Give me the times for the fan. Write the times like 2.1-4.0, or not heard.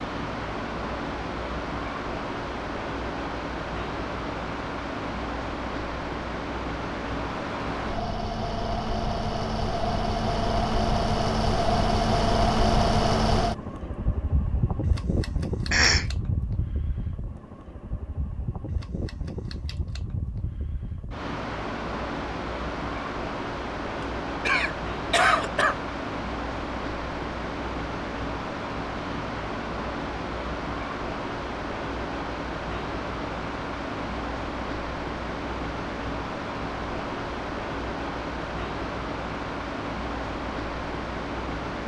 0.0-41.8.